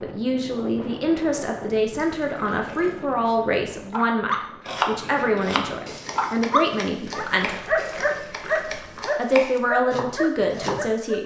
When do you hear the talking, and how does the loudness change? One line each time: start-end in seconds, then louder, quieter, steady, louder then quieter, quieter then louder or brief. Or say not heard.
0.0-7.8 steady
8.7-11.2 brief.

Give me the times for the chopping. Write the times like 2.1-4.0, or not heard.
4.7-10.8.